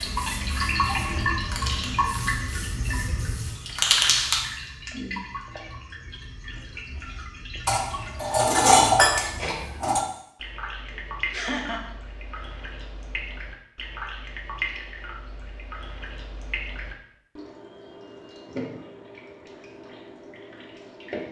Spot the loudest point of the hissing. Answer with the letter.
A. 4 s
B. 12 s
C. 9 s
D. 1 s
A.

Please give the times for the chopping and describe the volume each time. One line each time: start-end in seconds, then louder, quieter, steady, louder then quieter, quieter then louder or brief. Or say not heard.
not heard.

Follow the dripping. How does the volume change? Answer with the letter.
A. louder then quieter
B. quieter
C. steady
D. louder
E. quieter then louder
B.